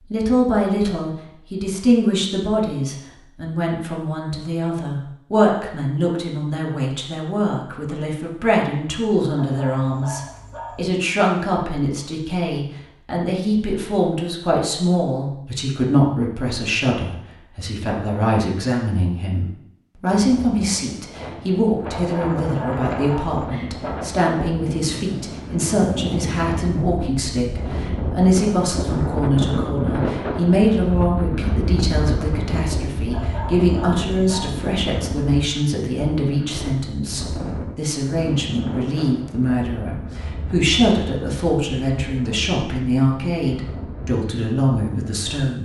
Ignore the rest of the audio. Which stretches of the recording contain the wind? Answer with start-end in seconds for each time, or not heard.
20.1-45.5.